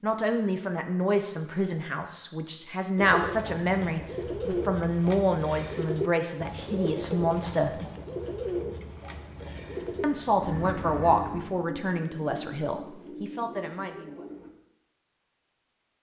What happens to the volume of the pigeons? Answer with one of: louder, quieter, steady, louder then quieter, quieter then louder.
quieter.